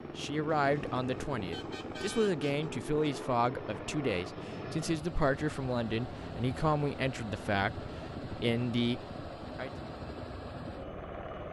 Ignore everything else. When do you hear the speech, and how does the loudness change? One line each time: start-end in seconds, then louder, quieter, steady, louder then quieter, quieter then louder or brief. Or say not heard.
0.1-9.7 steady.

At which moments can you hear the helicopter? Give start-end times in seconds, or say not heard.
0.0-11.4.